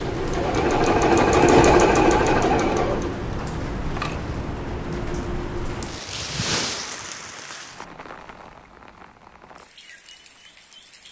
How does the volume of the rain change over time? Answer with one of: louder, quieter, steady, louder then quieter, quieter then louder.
quieter.